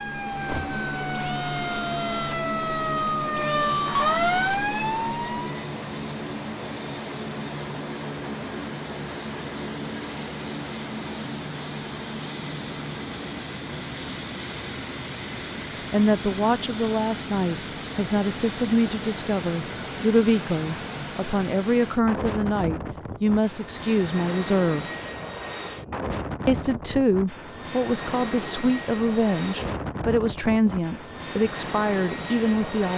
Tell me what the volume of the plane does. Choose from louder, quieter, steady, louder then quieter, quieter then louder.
steady.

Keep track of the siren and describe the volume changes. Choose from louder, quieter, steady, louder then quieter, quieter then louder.
louder.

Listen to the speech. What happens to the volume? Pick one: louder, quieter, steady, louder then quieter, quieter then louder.
steady.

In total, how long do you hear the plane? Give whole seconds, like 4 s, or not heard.
33 s.